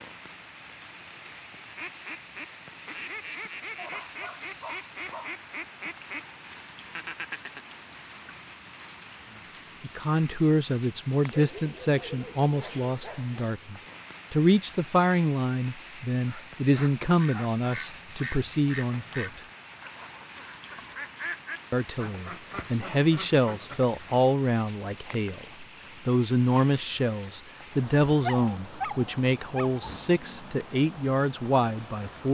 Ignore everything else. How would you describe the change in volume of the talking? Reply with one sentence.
The volume of the talking stays about the same.